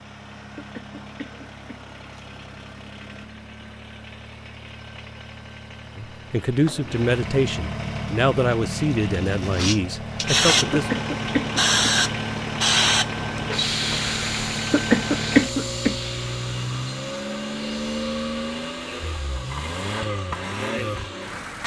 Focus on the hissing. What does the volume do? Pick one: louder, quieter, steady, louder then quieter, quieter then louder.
quieter.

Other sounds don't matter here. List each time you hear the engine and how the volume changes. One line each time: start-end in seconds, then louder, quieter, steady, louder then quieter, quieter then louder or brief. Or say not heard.
0.0-21.6 louder.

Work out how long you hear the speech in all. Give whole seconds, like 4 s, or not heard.
5 s.